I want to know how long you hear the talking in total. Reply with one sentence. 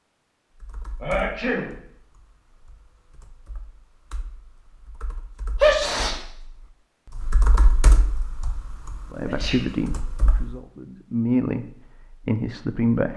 You can hear the talking for 4 seconds altogether.